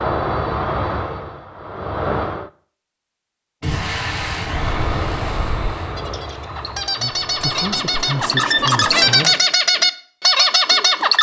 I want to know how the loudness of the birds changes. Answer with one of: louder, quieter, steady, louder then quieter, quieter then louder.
louder.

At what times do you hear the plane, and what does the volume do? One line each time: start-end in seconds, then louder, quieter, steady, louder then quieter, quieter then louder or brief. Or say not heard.
0.0-2.5 brief
4.4-9.3 quieter then louder.